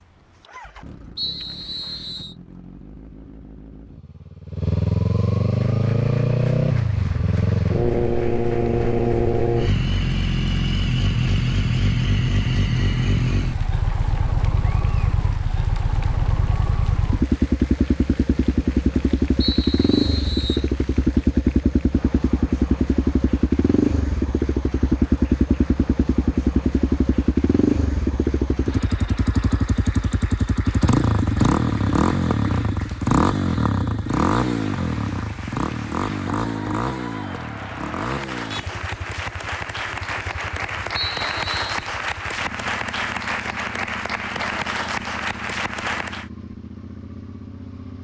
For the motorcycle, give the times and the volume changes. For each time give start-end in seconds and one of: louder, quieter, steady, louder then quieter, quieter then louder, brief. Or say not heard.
0.0-48.0 quieter.